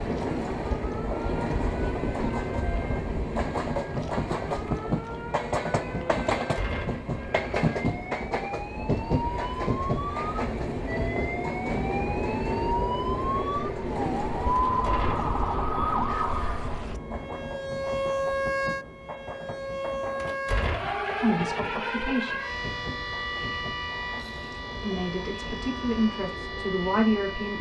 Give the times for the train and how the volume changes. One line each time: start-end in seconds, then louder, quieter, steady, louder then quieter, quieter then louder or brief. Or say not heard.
0.0-27.5 quieter.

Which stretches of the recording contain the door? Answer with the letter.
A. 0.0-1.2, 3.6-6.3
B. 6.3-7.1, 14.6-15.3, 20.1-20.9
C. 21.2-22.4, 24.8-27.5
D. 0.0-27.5
B.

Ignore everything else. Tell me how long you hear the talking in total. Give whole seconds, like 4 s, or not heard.
4 s.